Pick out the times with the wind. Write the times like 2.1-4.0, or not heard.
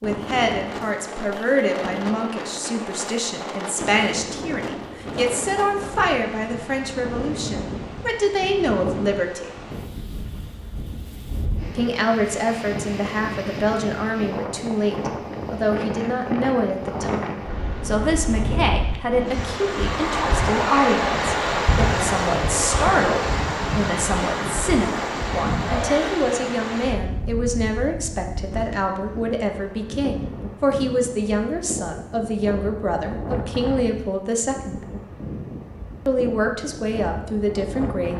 0.0-38.1.